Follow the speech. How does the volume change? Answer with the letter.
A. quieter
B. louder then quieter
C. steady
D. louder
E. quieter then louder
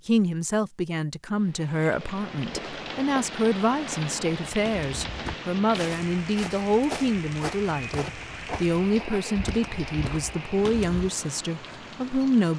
C.